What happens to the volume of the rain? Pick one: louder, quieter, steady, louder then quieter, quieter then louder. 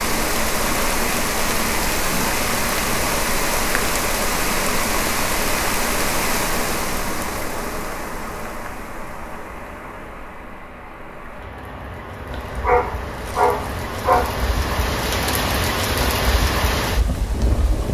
quieter then louder.